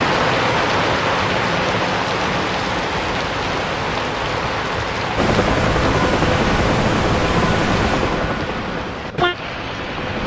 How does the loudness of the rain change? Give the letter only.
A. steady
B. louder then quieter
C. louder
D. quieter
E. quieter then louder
D.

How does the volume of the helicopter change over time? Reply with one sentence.
The loudness of the helicopter goes down.